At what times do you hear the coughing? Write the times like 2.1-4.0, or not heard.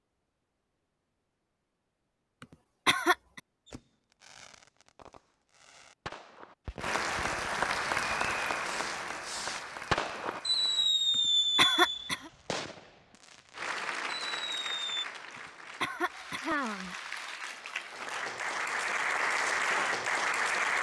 2.4-3.4, 11.6-12.3, 15.3-16.9.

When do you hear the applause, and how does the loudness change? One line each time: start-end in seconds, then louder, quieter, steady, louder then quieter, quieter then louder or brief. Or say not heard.
6.8-10.9 quieter
13.6-20.7 quieter then louder.